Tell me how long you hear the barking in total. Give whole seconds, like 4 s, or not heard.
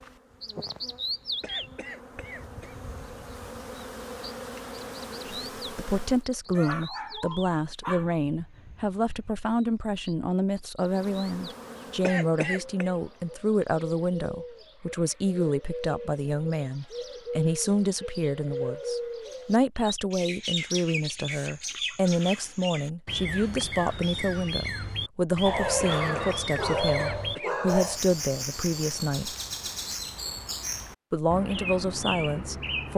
4 s.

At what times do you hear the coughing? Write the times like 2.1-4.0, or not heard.
1.4-2.8, 12.0-12.9, 25.9-27.6.